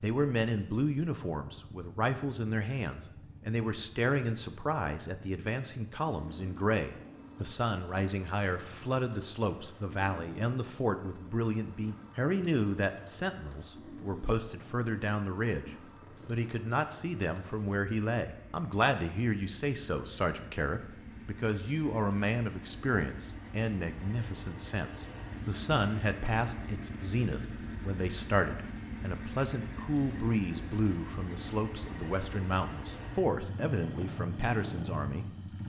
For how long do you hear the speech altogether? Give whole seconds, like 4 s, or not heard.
35 s.